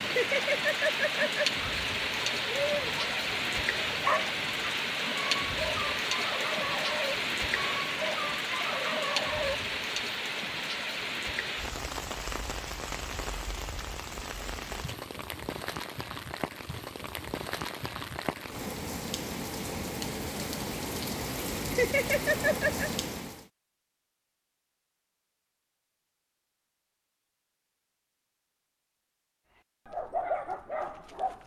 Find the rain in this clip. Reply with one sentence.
You can hear the rain from 0.0 to 23.4 s.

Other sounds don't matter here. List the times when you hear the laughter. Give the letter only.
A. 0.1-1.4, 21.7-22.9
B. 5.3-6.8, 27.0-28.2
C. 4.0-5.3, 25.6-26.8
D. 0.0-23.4
A.